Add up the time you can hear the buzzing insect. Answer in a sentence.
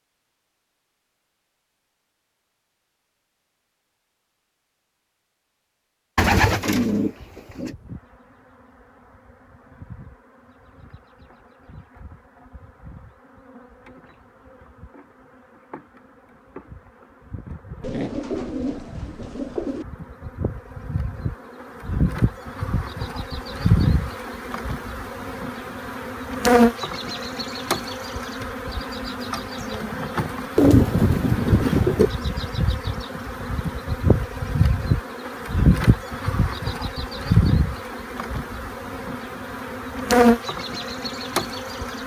You can hear the buzzing insect for 35 seconds altogether.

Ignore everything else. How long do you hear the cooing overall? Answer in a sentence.
You can hear the cooing for 5 seconds altogether.